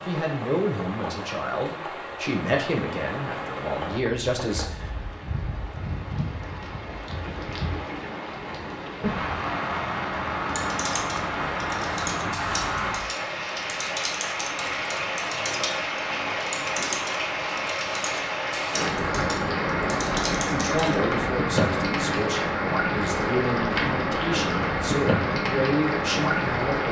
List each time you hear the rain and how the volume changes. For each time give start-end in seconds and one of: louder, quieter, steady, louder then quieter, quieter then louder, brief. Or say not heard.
0.0-26.8 louder.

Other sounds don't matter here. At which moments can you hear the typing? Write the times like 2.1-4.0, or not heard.
10.4-20.9.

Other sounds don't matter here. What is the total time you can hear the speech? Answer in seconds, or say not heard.
11 s.